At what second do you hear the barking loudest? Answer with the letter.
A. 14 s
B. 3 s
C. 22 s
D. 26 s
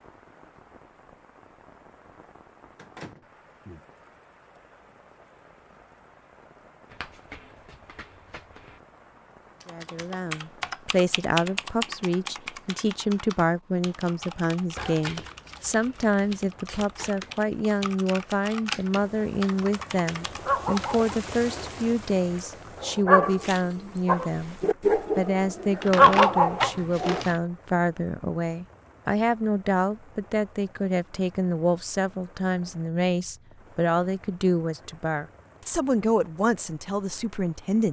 D.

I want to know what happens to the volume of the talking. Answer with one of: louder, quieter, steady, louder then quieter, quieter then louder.
steady.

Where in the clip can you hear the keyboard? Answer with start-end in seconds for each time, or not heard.
9.6-21.0.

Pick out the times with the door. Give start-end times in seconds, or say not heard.
2.8-3.8.